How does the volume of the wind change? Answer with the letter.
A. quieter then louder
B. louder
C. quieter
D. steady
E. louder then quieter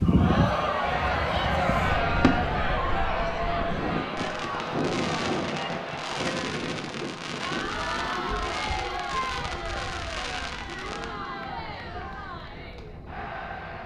C.